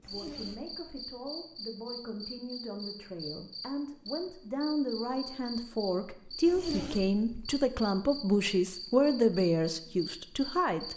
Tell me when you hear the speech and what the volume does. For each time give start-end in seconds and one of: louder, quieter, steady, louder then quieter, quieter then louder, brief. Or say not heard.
0.0-10.9 louder.